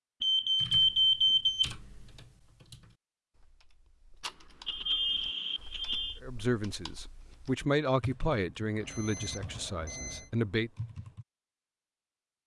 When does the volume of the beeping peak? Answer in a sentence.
The volume of the beeping peaks at 1 second.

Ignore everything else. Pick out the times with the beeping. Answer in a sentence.
The beeping can be heard from 0.2 to 1.7 s, from 4.2 to 6.2 s and from 8.8 to 10.3 s.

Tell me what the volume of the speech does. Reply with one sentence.
The volume of the speech goes up, then down.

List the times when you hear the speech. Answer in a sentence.
The speech can be heard from 6.2 to 10.7 s.